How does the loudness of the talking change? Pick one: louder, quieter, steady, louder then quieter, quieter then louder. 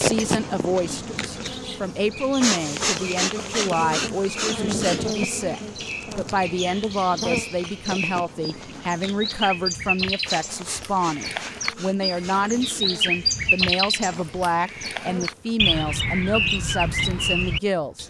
steady.